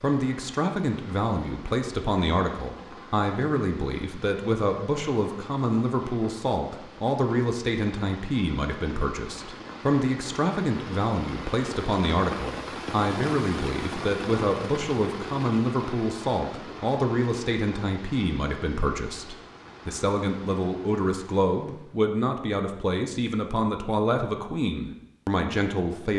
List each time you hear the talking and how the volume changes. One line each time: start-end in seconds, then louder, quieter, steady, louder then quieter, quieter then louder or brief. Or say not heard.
0.0-26.1 steady.